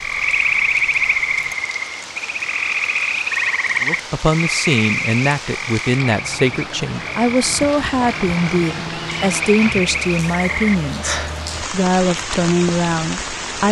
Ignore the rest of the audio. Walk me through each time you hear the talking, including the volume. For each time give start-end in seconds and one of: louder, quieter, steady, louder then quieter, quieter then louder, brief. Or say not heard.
3.8-13.6 steady.